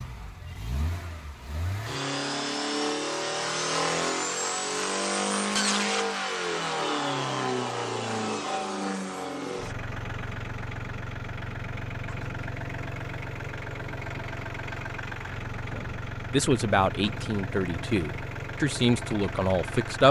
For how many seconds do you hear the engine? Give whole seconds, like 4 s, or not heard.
20 s.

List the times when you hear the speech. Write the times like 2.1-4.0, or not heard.
15.7-20.0.